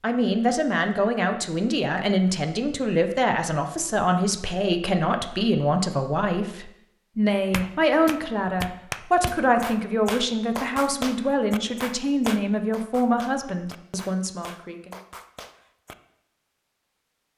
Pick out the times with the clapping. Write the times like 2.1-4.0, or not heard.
7.5-15.9.